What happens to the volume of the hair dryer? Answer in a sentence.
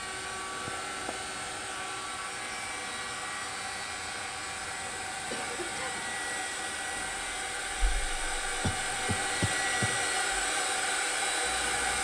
The loudness of the hair dryer goes up.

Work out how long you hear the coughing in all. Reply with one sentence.
The coughing can be heard for 3 seconds in total.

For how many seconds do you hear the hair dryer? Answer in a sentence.
You can hear the hair dryer for 12 seconds altogether.